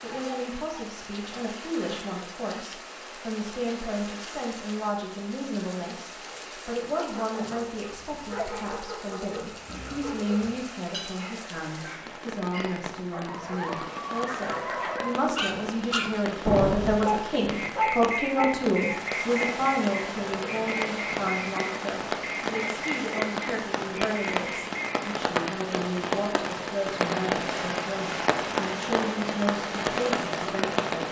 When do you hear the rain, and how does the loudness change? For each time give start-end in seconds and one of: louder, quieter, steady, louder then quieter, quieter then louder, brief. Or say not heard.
0.0-31.0 louder.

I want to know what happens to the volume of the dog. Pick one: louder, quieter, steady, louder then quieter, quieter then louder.
louder.